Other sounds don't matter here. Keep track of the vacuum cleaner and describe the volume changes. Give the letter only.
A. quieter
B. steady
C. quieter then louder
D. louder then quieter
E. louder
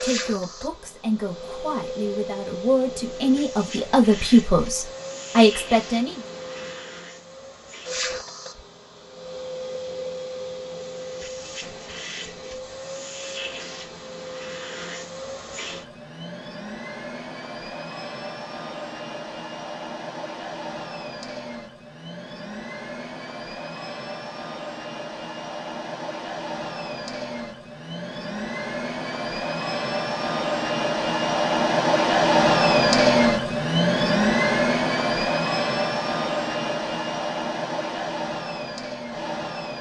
E.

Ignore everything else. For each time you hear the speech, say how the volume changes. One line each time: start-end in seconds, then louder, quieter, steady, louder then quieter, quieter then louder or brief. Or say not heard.
0.0-6.2 louder.